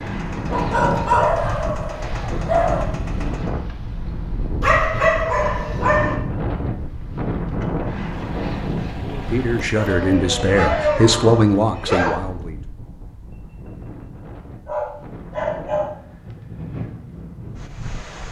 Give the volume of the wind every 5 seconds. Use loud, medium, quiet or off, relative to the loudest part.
loud, loud, medium, medium.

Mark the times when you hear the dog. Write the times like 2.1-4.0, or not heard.
0.5-2.9, 4.6-6.2, 9.8-12.2, 14.7-15.9.